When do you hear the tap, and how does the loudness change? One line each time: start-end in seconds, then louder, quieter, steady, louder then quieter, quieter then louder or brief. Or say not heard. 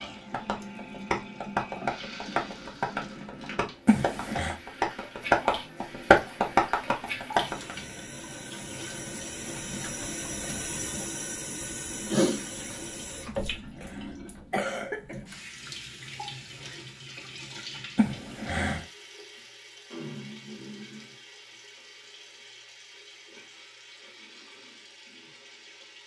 0.0-26.0 louder then quieter.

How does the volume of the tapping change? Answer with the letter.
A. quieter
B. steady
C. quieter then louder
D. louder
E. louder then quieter
C.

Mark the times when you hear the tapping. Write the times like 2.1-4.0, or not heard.
0.3-7.8.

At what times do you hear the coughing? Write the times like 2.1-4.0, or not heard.
3.9-4.5, 13.2-15.2, 17.9-18.9.